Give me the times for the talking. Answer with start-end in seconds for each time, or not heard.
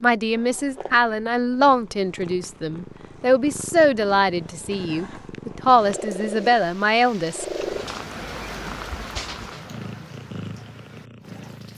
0.0-7.5.